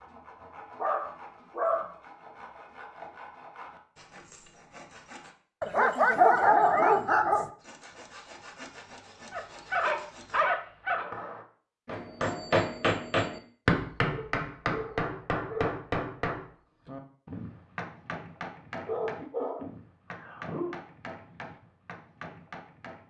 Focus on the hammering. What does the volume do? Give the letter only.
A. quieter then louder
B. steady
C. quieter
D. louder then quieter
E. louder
C.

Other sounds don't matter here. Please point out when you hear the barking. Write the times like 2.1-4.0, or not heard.
0.8-1.9, 5.6-7.5, 9.3-11.1, 14.1-15.7, 18.9-20.8.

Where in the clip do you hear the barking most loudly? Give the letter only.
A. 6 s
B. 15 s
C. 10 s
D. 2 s
A.